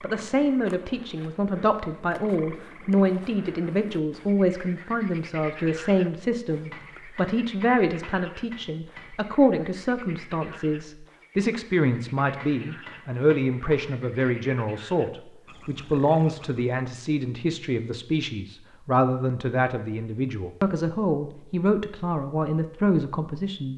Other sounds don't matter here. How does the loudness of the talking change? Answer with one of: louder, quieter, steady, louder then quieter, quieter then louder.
steady.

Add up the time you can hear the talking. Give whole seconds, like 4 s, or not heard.
24 s.